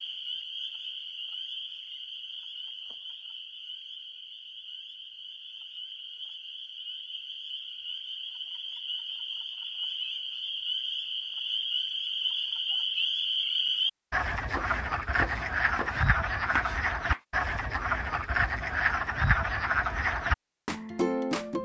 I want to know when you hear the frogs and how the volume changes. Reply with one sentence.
The frogs can be heard from 0.0 to 21.6 s, getting louder.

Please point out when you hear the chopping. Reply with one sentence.
The chopping can be heard from 14.4 to 17.2 s.